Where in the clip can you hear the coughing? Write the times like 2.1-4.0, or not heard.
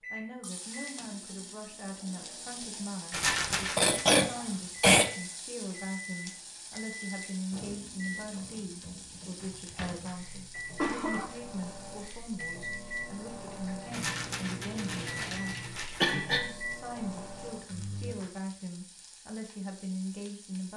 3.2-5.1, 9.9-11.2, 16.0-16.4.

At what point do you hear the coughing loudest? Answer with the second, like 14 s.
5 s.